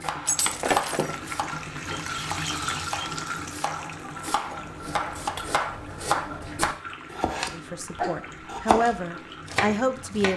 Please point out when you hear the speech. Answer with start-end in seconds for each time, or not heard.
7.5-10.3.